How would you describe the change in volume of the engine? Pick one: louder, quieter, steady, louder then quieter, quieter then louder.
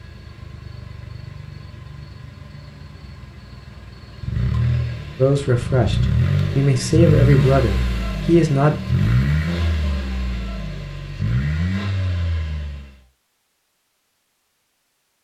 louder then quieter.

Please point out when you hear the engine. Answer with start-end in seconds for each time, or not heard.
0.0-13.0.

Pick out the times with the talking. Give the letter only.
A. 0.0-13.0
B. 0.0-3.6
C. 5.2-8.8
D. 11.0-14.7
C.